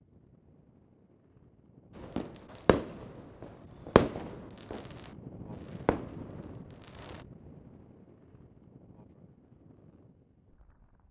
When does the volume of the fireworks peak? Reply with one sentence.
The loudest moment of the fireworks is at 4 seconds.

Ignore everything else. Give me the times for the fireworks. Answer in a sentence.
The fireworks can be heard from 1.9 to 7.2 s.